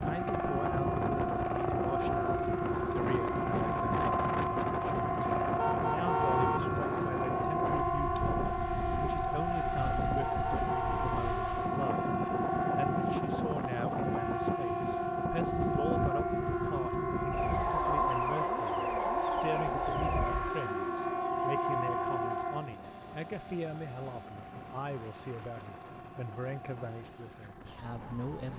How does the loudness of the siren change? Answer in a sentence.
The loudness of the siren goes down.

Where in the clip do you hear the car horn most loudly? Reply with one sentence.
The loudest moment of the car horn is at 6 seconds.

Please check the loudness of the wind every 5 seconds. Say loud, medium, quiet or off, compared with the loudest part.
loud, loud, loud, loud, medium, quiet.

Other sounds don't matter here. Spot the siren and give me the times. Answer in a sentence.
The siren can be heard from 0.0 to 28.5 s.